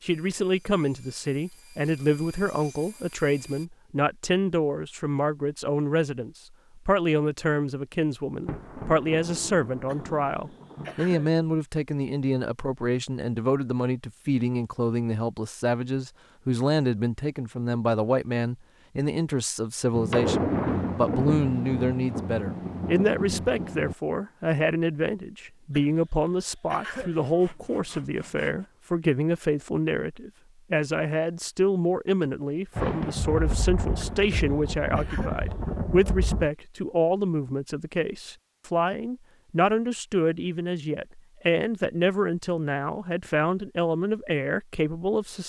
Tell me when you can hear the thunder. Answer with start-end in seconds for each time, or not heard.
8.4-11.2, 19.9-23.9, 32.8-36.5.